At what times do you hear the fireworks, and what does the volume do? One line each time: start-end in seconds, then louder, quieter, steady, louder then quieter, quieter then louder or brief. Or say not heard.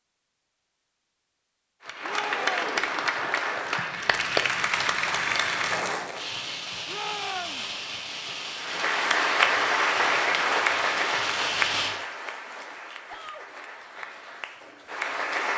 6.1-11.9 steady.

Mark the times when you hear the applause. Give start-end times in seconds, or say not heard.
1.9-6.3, 8.6-15.5.